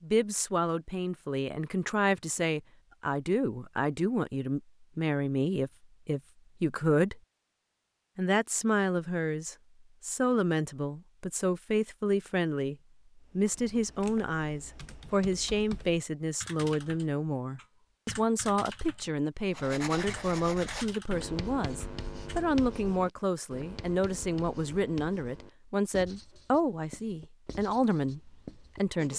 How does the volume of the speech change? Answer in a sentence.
The loudness of the speech stays about the same.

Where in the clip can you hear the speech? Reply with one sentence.
The speech can be heard from 0.0 to 7.2 s, from 8.2 to 12.8 s and from 13.3 to 29.1 s.